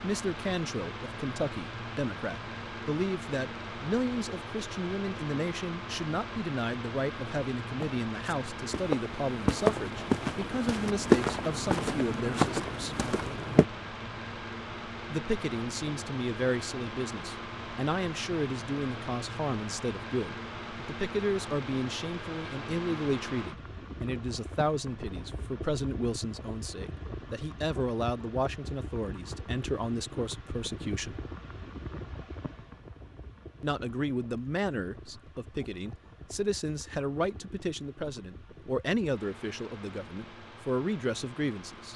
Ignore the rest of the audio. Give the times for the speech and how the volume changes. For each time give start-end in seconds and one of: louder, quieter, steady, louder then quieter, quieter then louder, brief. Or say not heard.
0.0-13.1 steady
15.1-31.2 steady
33.6-41.9 steady.